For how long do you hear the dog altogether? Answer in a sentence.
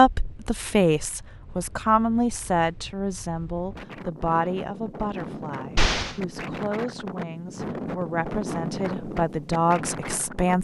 You can't hear the dog here.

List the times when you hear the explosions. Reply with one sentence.
You can hear the explosions from 5.8 to 6.2 s.